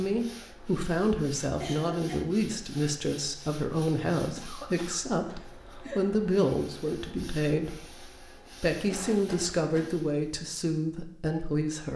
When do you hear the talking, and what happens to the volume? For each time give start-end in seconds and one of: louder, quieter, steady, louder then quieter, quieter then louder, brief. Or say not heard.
0.0-11.9 steady.